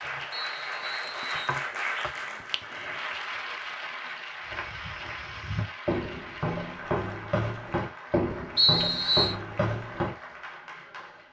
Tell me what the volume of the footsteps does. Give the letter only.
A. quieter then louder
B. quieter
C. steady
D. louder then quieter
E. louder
E.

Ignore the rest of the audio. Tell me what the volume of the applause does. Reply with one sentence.
The loudness of the applause goes down.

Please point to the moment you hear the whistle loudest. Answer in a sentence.
The volume of the whistle peaks at 9 seconds.